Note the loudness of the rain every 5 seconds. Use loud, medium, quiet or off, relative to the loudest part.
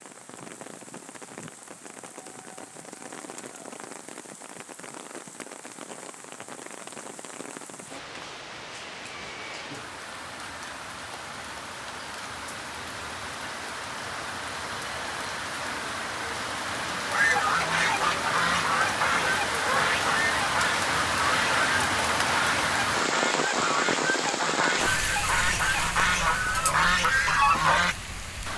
quiet, quiet, medium, loud, loud, medium.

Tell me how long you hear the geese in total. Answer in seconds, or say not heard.
11 s.